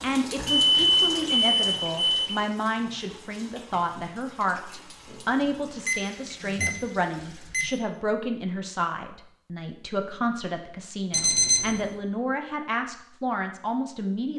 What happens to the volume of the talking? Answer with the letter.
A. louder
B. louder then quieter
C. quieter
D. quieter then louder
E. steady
E.